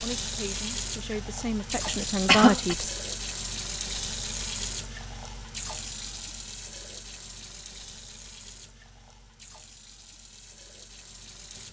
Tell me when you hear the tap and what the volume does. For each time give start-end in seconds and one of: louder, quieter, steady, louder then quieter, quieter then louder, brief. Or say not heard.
0.0-11.6 quieter.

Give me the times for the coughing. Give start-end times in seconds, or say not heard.
1.9-2.8.